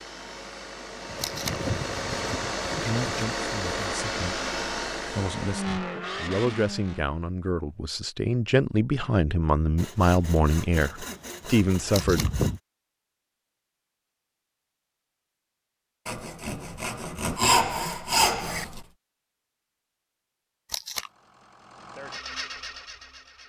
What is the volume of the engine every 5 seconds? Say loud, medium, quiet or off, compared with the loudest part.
loud, loud, off, off, medium.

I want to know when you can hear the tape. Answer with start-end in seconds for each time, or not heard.
1.1-1.6, 11.9-12.3, 20.6-21.1.